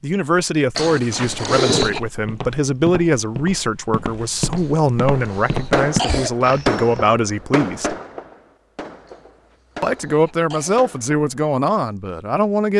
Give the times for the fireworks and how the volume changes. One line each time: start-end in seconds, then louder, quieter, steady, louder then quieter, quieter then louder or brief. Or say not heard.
5.1-11.2 quieter.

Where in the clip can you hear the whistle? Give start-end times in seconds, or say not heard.
not heard.